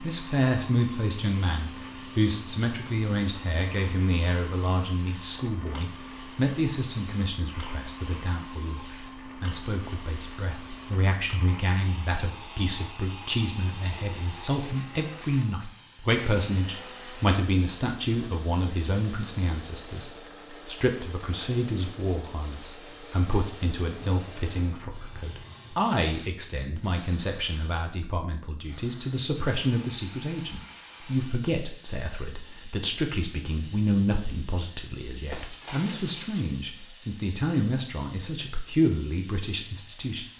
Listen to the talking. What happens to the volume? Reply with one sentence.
The volume of the talking stays about the same.